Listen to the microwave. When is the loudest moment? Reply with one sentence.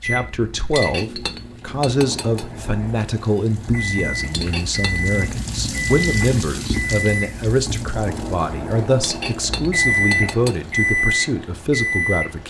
The volume of the microwave peaks at 10 seconds.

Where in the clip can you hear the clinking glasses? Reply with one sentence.
You can hear the clinking glasses from 0.8 to 2.5 s, from 4.3 to 5.0 s and from 9.0 to 10.6 s.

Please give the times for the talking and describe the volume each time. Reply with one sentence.
You can hear the talking from 0.0 to 12.4 s, at a steady volume.